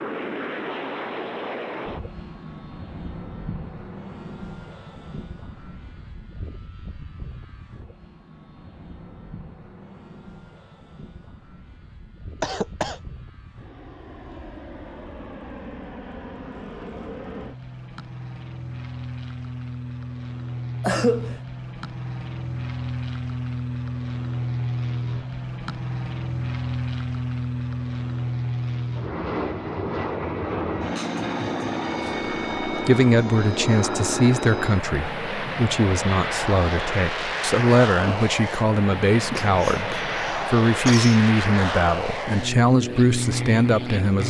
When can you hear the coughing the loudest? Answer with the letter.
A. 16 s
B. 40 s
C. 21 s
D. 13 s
C.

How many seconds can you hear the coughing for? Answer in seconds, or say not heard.
3 s.